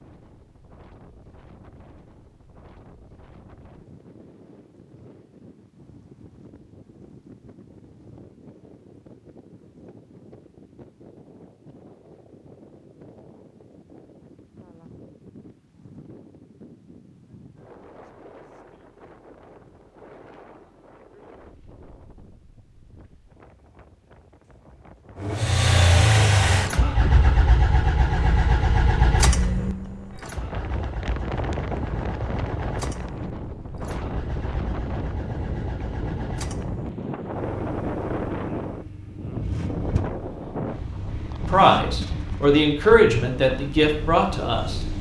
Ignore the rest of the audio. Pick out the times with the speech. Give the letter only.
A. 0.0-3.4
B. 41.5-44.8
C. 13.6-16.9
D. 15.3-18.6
B.